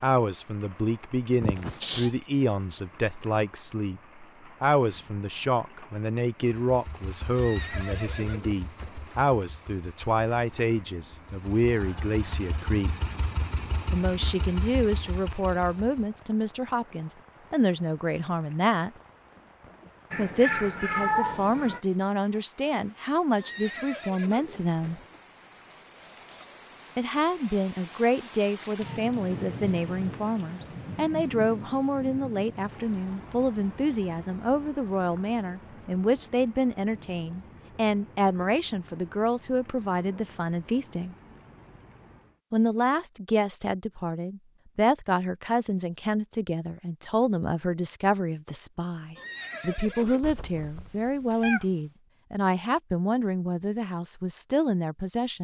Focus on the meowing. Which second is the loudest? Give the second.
21 s.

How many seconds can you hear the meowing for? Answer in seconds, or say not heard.
4 s.